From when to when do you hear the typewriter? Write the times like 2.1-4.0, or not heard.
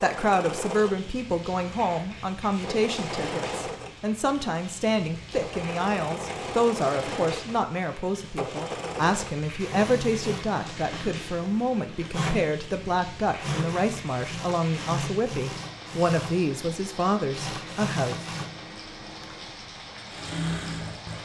not heard.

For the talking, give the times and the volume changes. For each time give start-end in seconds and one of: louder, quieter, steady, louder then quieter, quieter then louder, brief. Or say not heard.
0.0-18.2 steady.